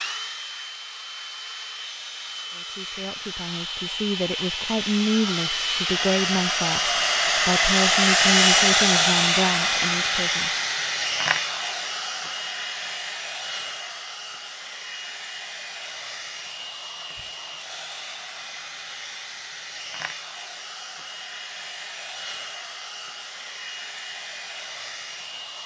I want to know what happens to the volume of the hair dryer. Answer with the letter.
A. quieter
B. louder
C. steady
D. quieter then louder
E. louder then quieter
E.